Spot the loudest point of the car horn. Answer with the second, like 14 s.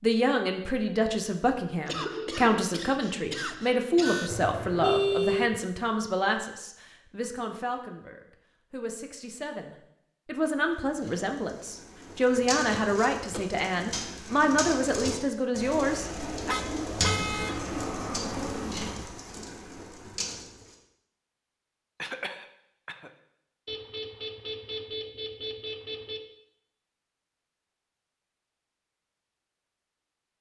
5 s.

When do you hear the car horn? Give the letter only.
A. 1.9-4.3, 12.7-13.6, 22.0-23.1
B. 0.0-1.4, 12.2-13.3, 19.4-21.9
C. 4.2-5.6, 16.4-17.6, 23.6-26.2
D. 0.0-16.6
C.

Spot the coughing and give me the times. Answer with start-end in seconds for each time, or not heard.
1.9-4.3, 12.7-13.6, 22.0-23.1.